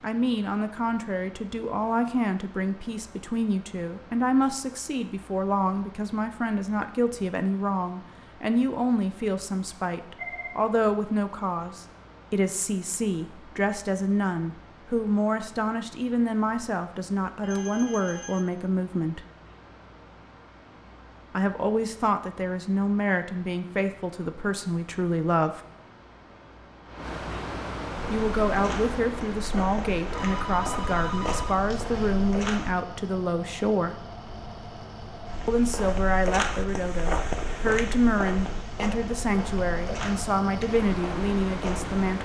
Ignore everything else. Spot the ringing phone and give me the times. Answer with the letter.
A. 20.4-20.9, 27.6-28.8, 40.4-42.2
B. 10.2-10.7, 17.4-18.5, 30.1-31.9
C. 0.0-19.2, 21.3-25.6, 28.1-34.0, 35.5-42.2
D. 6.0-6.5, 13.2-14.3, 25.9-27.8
B.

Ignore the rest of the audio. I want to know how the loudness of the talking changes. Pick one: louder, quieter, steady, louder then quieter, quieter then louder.
steady.